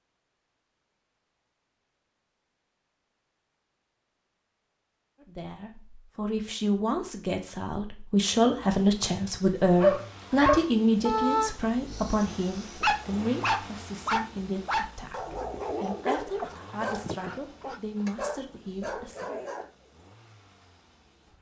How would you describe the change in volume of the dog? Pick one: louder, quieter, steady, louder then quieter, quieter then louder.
quieter.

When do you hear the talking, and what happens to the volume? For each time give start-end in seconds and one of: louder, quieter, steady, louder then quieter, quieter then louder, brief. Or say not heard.
5.2-19.2 louder then quieter.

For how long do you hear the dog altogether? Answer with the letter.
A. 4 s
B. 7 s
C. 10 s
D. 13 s
C.